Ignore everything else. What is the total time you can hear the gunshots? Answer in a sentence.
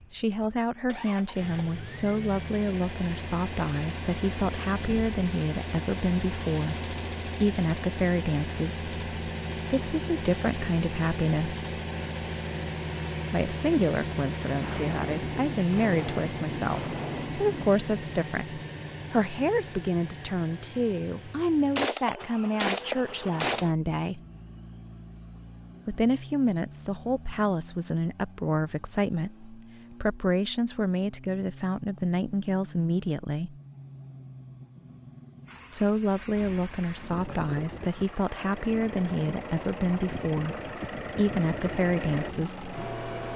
You can hear the gunshots for 5 seconds altogether.